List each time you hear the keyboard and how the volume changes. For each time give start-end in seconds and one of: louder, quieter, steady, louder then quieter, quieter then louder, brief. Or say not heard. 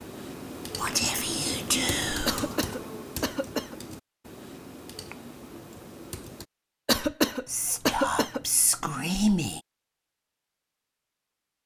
0.0-6.5 quieter.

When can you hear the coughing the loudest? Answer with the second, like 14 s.
7 s.